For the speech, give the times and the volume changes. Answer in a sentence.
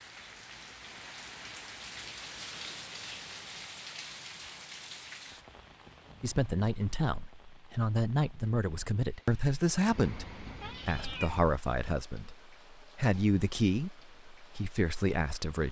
The speech can be heard from 6.2 to 15.6 s, at a steady volume.